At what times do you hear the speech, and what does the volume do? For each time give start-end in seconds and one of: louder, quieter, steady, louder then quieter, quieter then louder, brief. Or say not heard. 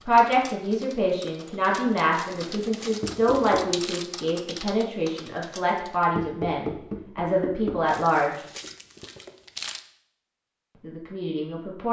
0.0-8.4 steady
10.8-11.8 brief.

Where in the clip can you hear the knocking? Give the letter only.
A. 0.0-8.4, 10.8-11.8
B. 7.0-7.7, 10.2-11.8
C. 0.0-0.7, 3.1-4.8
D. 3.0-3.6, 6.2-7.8
D.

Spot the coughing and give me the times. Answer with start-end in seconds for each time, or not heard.
not heard.